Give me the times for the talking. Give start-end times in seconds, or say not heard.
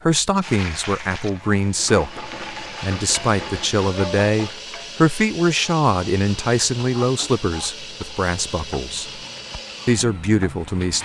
0.1-9.2, 9.8-11.0.